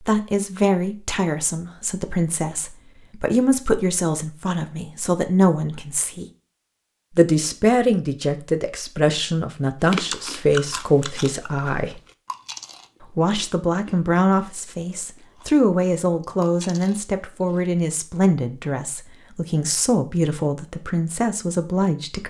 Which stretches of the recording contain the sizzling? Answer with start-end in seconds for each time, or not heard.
not heard.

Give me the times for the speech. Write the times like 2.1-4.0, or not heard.
0.0-6.2, 7.2-12.0, 13.0-22.2.